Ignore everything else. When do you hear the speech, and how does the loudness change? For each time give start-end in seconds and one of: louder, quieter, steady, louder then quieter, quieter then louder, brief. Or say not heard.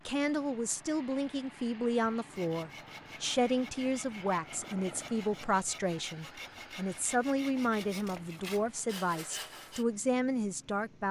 0.1-11.0 steady.